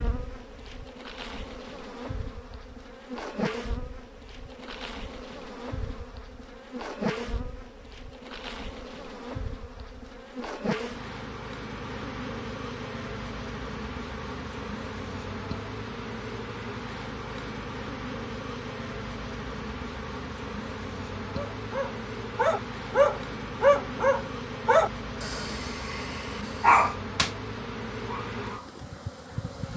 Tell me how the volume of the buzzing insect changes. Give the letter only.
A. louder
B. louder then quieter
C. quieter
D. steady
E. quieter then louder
D.